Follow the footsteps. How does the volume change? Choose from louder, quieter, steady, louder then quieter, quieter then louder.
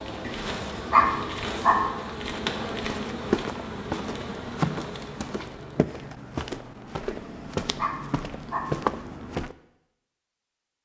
quieter then louder.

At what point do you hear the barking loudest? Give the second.
1 s.